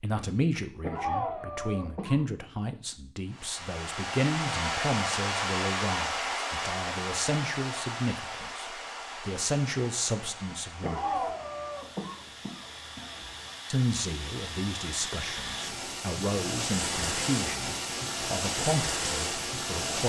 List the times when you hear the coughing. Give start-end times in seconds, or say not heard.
0.8-2.3, 10.8-13.5.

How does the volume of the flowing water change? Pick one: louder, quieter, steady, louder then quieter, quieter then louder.
quieter then louder.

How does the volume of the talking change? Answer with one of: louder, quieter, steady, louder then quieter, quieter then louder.
steady.